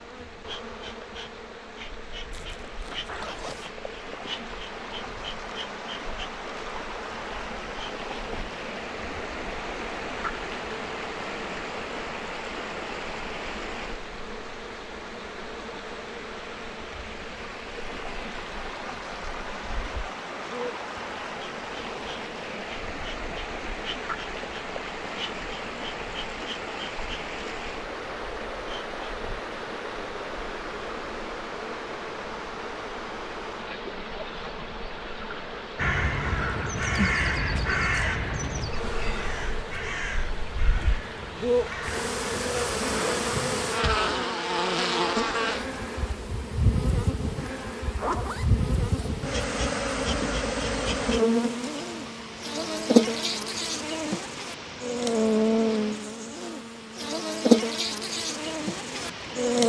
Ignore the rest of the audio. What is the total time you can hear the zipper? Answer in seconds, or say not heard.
3 s.